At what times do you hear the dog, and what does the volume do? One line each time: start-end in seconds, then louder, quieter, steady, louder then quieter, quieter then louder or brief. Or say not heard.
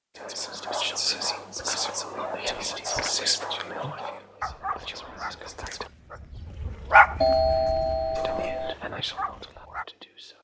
0.2-9.8 louder then quieter.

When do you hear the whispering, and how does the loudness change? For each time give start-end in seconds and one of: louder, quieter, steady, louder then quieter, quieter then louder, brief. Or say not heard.
0.1-5.9 quieter
8.2-10.3 brief.